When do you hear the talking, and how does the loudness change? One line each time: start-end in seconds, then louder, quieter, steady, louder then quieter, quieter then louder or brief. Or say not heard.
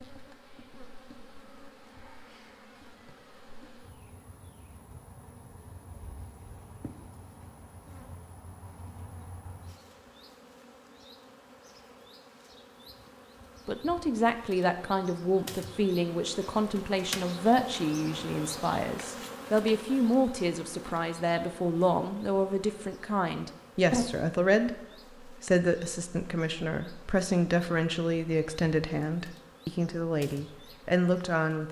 13.7-31.6 steady.